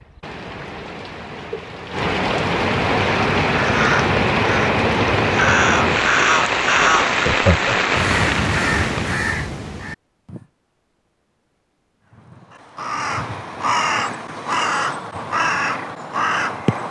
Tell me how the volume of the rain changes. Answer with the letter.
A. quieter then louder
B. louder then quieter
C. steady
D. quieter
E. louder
E.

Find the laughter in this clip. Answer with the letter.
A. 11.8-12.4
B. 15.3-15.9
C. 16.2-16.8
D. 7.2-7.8
D.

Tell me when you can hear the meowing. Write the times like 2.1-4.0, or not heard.
not heard.